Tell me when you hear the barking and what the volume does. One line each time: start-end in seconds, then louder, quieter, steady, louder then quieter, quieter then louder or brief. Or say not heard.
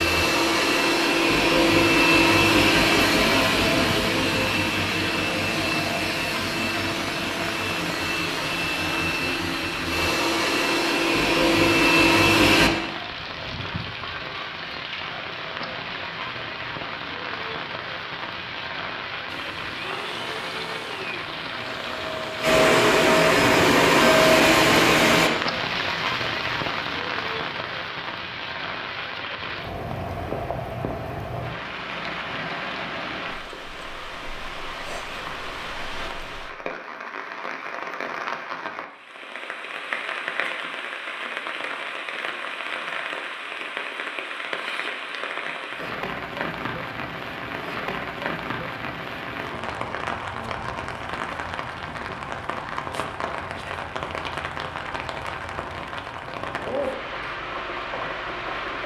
not heard.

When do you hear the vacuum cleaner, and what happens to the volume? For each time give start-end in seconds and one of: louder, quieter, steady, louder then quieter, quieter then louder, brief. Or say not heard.
0.0-12.7 quieter then louder
19.2-25.3 louder.